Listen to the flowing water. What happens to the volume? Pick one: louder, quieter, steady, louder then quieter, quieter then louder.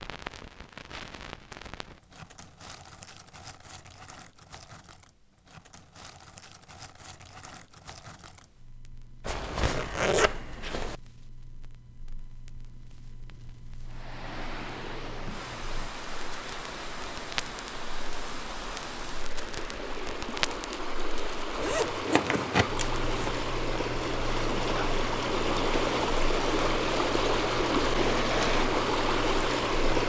louder.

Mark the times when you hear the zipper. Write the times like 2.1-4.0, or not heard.
9.2-10.9, 21.6-23.4.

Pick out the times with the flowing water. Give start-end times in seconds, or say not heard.
13.8-30.0.